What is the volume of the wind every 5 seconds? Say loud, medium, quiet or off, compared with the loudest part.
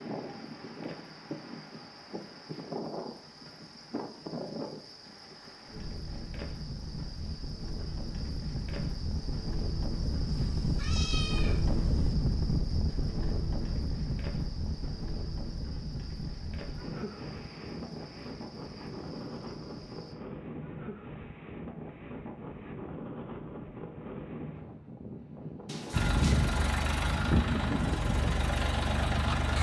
medium, medium, loud, medium, medium, medium.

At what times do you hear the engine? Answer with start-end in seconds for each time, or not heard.
25.9-29.5.